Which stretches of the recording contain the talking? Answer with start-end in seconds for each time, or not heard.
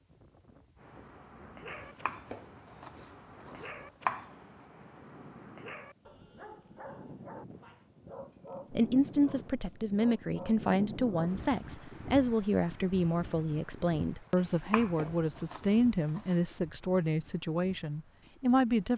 8.7-18.9.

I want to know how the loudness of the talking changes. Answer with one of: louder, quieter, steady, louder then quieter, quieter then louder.
steady.